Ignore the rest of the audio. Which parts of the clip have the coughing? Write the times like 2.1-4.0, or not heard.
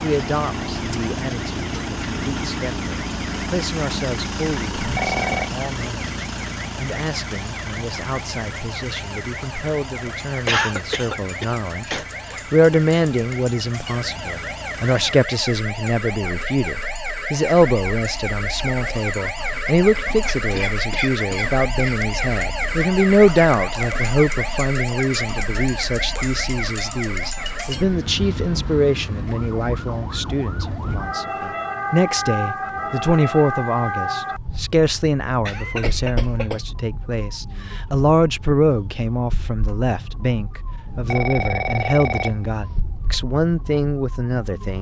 10.4-12.1, 20.2-21.9, 35.5-36.6.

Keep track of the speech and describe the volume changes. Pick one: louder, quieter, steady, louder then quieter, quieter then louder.
louder.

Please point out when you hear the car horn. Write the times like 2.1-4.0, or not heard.
not heard.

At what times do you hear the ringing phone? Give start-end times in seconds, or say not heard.
4.8-5.5, 40.9-42.8.